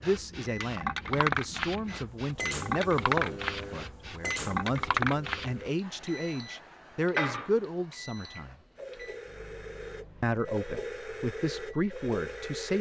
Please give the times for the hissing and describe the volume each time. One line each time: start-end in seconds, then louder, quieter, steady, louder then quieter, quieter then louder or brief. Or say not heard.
0.0-12.7 quieter then louder.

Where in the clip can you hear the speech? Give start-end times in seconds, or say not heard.
0.0-8.6, 10.2-12.7.